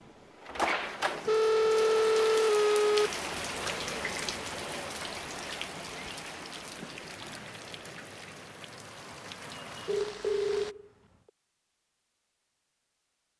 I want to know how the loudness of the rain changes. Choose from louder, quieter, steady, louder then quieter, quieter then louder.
quieter.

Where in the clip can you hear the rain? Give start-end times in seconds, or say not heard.
0.0-10.8.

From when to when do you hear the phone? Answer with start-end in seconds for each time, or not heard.
1.2-3.1, 9.8-10.8.